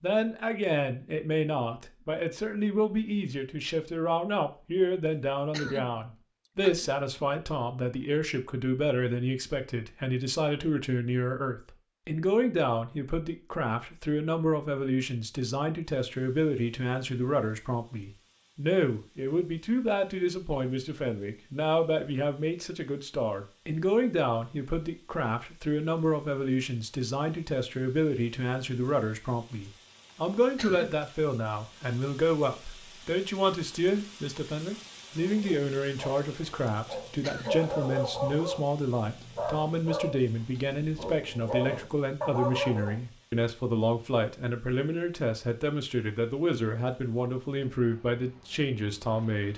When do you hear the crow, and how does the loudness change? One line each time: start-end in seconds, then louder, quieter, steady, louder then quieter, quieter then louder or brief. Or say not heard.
not heard.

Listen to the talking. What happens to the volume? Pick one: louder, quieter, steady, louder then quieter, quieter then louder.
steady.